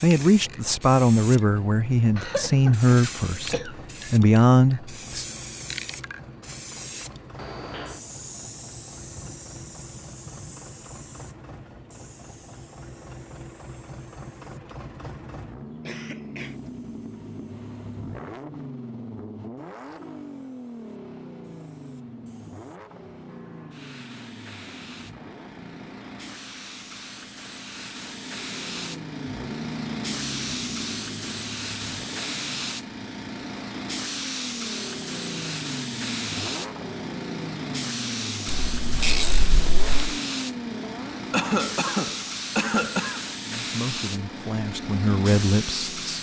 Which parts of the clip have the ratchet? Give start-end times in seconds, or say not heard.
38.5-40.1.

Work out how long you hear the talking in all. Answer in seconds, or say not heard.
8 s.